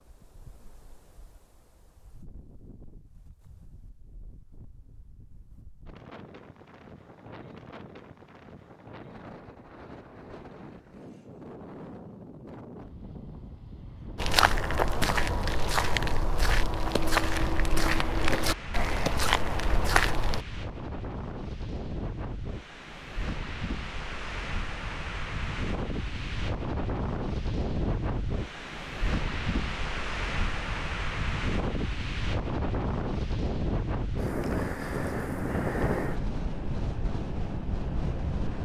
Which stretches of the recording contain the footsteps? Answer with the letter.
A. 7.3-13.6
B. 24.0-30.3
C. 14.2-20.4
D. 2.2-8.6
C.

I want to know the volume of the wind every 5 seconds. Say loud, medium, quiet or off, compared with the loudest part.
quiet, quiet, quiet, medium, medium, loud, loud, loud.